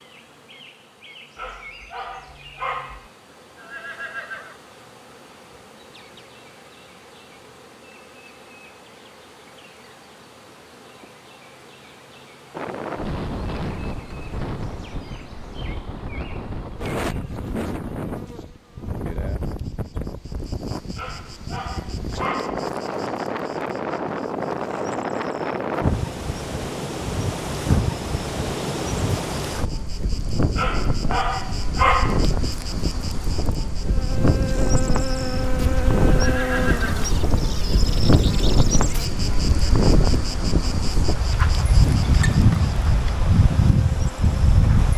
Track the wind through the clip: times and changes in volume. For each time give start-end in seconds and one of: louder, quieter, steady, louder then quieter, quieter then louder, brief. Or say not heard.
12.5-44.9 louder.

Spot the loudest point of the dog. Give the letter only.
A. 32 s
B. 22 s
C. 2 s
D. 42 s
A.